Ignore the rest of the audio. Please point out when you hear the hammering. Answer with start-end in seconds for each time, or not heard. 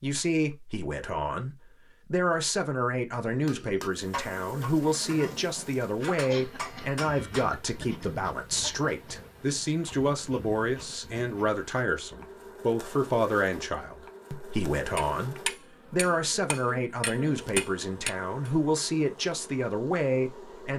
3.2-7.5, 14.9-18.5.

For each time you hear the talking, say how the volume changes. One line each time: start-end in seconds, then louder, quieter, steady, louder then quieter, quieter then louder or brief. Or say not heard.
0.0-20.7 steady.